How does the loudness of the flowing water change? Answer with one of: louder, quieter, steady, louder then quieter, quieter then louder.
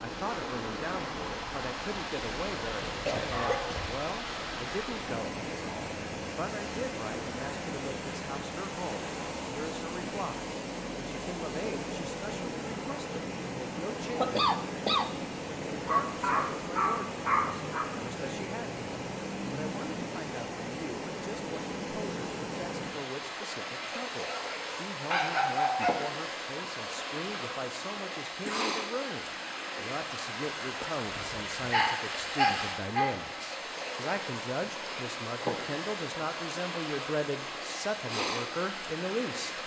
steady.